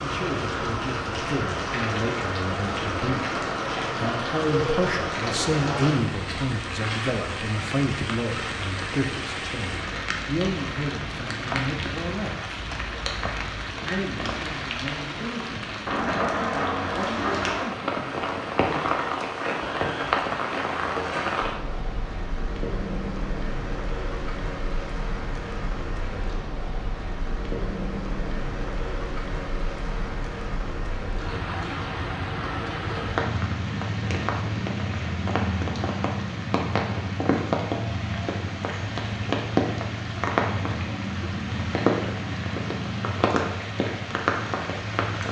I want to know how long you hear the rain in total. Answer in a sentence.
The rain can be heard for 45 seconds in total.